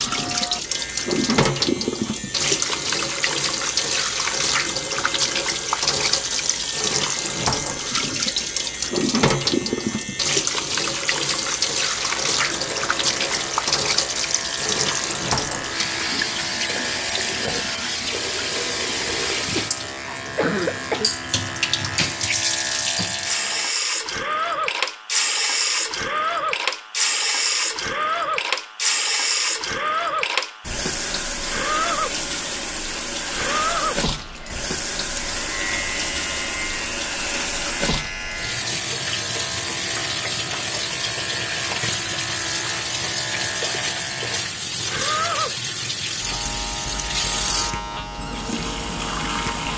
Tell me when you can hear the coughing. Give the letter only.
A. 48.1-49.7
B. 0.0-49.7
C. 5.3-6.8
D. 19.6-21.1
D.